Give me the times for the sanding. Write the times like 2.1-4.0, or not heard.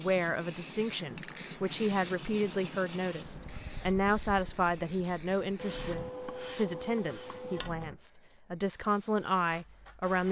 1.7-3.3, 5.5-8.0.